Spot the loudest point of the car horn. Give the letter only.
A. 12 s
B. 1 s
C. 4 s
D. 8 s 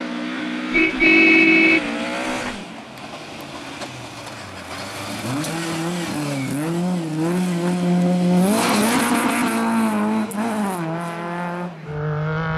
B.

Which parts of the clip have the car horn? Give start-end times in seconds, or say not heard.
0.7-2.5.